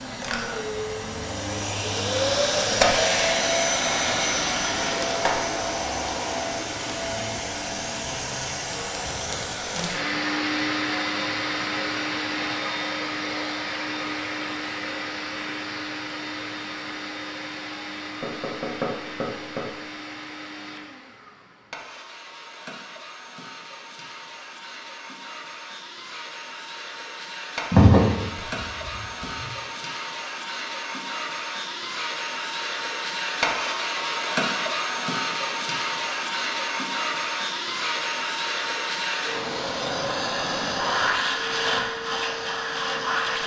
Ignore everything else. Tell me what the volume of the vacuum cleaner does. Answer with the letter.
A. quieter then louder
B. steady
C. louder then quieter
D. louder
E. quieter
A.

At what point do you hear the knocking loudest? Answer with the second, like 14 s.
28 s.